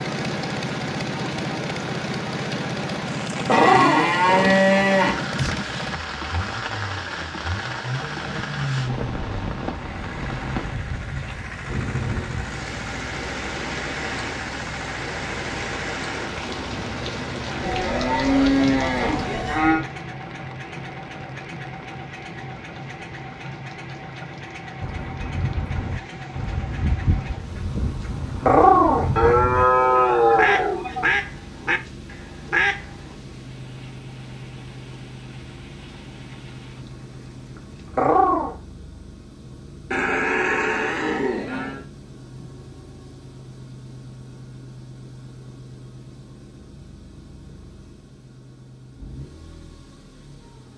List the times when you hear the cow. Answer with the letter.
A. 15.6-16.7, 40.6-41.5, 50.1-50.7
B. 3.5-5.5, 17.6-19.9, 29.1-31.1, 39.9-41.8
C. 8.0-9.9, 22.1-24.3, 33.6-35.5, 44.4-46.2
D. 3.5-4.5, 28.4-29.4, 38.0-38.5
B.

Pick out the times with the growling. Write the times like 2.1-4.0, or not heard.
3.5-4.5, 28.4-29.4, 38.0-38.5.